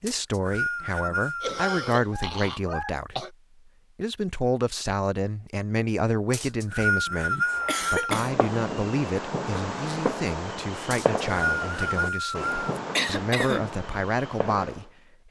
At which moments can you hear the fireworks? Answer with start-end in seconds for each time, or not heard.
7.5-14.9.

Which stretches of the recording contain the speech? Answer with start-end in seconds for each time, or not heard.
0.0-3.4, 4.0-15.2.